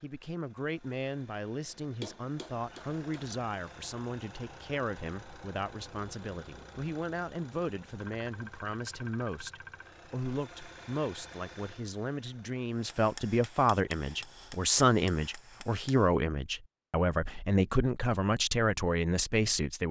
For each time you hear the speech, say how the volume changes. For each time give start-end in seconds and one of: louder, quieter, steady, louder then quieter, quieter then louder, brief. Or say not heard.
0.0-19.8 louder.